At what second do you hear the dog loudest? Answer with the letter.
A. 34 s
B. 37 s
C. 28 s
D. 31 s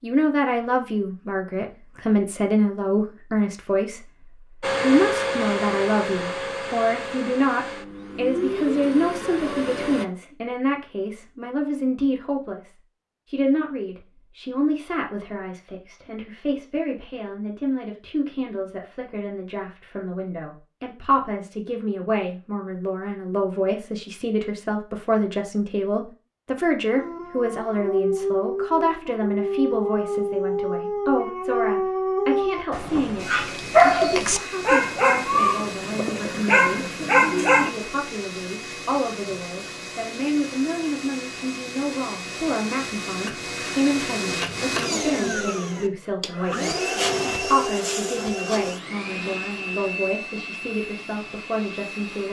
A.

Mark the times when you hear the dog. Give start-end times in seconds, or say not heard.
26.9-37.7.